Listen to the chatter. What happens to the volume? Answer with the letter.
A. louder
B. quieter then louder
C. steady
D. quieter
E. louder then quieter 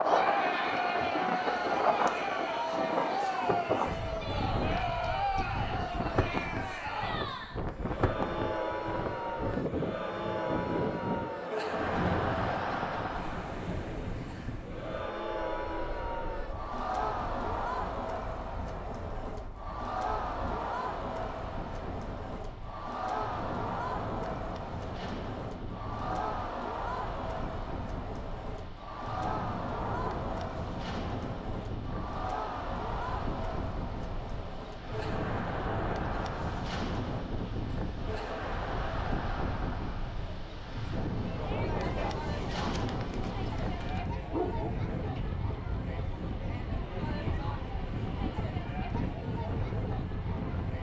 D.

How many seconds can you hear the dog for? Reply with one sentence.
You can hear the dog for 2 seconds altogether.